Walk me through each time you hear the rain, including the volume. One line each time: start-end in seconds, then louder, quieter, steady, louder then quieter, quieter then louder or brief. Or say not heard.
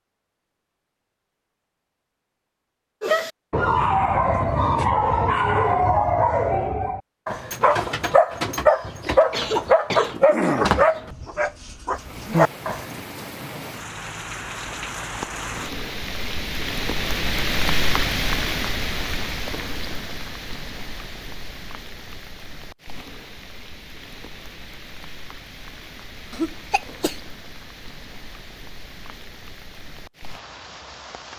11.9-31.3 louder then quieter.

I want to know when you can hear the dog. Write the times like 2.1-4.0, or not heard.
3.0-12.8.